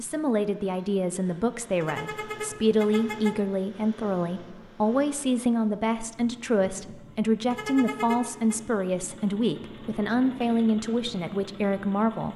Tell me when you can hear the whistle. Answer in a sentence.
You can't hear the whistle here.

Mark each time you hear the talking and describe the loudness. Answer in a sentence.
You can hear the talking from 0.0 to 12.3 s, at a steady volume.